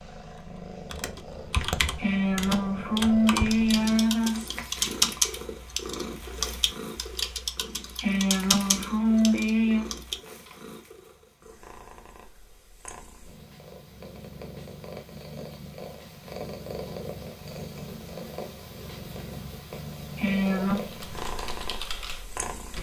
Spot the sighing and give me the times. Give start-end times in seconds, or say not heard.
1.9-4.6, 8.0-9.8, 20.1-20.8.